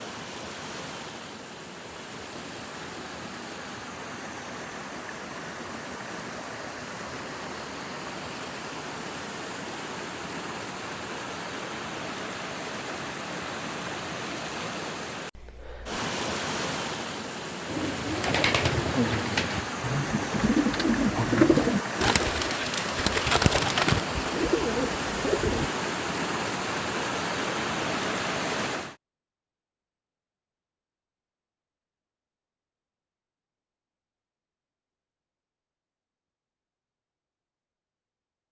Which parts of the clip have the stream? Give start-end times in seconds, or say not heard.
0.0-28.9.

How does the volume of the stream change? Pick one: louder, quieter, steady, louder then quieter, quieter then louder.
louder.